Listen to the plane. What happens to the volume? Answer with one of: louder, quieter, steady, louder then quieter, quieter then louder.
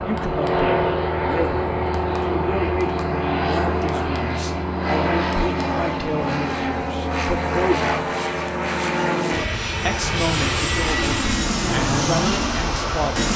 steady.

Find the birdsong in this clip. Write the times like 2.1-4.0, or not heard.
not heard.